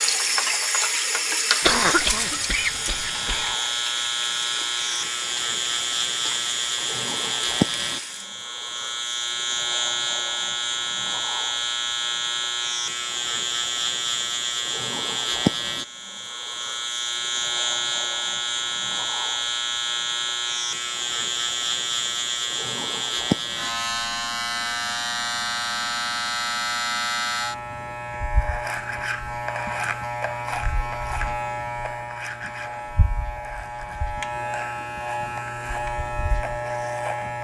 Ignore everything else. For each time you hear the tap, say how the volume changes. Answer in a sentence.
The tap can be heard from 0.0 to 8.3 s, getting quieter.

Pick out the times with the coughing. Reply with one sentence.
You can hear the coughing from 1.6 to 3.5 s.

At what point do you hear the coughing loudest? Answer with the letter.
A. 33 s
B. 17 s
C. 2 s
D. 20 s
C.